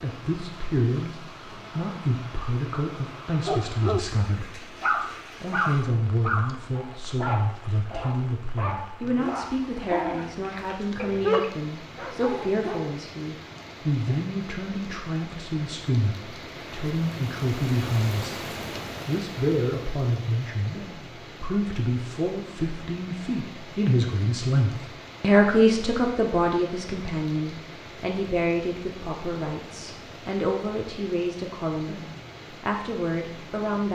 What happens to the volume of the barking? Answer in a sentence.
The volume of the barking goes down, then up.